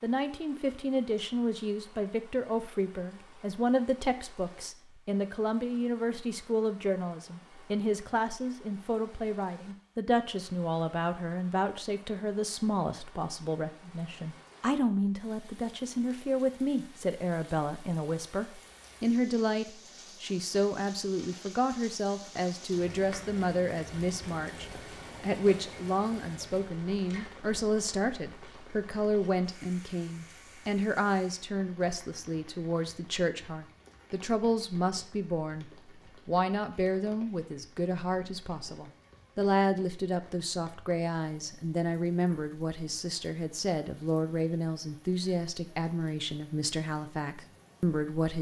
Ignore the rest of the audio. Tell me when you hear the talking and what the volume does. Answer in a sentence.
The talking can be heard from 0.0 to 48.3 s, at a steady volume.